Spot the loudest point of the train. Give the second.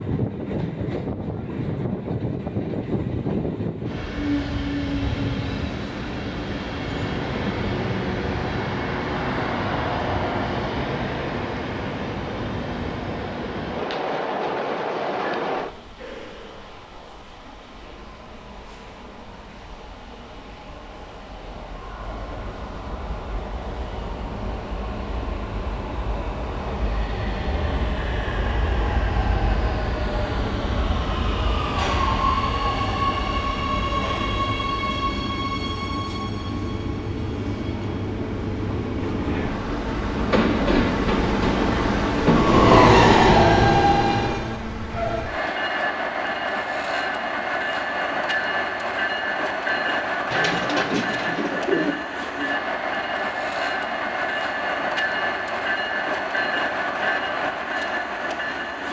43 s.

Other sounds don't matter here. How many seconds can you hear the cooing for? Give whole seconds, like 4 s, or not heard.
2 s.